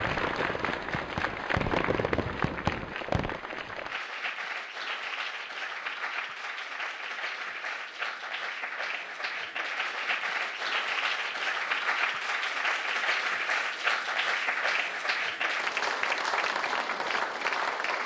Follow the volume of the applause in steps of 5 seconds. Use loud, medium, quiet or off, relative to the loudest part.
medium, medium, loud, loud.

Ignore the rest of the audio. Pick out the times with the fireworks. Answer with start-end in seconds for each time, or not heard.
0.0-3.4.